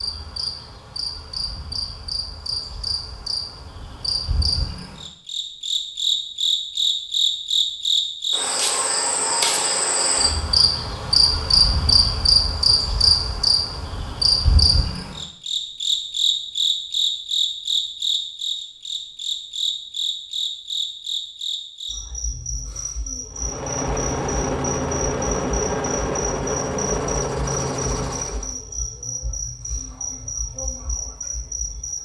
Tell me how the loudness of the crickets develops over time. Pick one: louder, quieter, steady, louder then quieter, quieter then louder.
louder then quieter.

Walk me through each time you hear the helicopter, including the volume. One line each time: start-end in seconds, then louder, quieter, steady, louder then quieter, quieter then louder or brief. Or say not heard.
23.3-28.6 steady.